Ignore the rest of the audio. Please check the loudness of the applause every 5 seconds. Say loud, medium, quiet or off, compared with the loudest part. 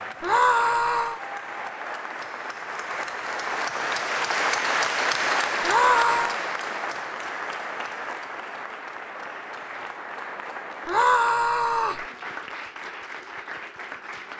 loud, loud, medium.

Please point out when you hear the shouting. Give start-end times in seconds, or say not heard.
0.2-1.2, 5.6-6.3, 10.8-12.1.